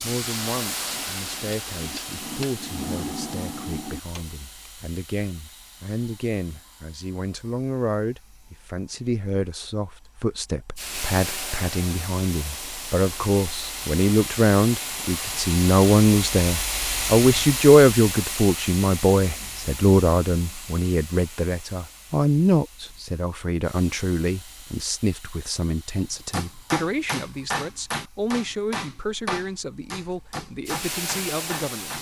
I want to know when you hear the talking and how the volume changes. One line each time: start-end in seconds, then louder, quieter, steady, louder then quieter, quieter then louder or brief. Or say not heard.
0.0-31.9 louder then quieter.